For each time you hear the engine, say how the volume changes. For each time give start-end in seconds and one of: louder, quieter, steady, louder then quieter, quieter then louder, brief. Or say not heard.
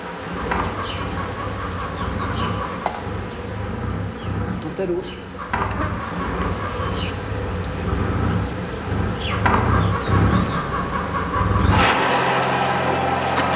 0.0-13.5 louder.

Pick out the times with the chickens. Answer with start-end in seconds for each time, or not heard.
0.3-2.9, 5.3-7.0, 9.3-11.7.